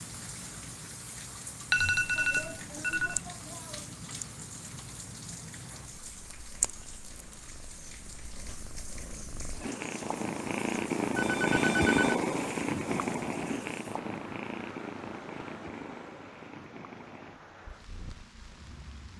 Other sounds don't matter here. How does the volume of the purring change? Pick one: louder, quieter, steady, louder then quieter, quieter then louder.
louder then quieter.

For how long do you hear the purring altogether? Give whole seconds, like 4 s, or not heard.
19 s.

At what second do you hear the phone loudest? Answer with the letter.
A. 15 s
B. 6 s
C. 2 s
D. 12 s
C.